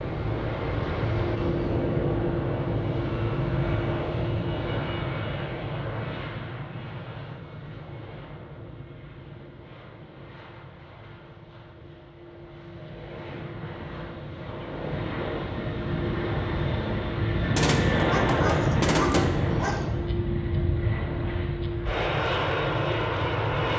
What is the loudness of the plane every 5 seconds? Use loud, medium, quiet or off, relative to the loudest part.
loud, medium, quiet, loud, loud.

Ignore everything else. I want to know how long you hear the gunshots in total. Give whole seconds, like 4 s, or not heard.
2 s.